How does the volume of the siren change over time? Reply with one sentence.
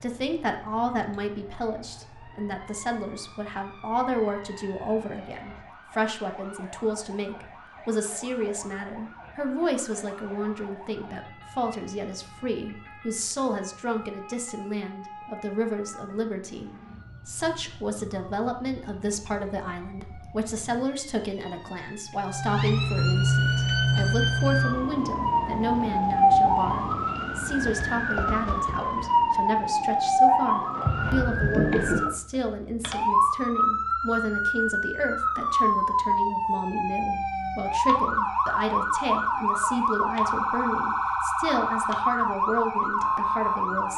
The volume of the siren goes up.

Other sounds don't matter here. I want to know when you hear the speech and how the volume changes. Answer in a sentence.
You can hear the speech from 0.0 to 43.9 s, at a steady volume.